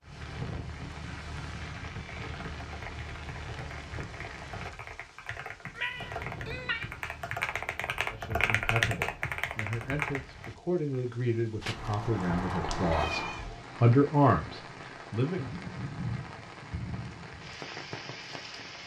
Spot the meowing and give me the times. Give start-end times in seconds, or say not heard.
5.7-6.9, 11.6-13.5.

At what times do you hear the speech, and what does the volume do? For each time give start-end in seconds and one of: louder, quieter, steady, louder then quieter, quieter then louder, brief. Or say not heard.
8.1-15.5 louder.